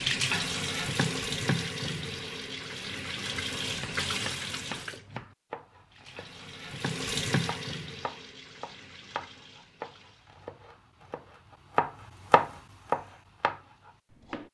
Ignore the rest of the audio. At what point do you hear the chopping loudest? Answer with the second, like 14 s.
12 s.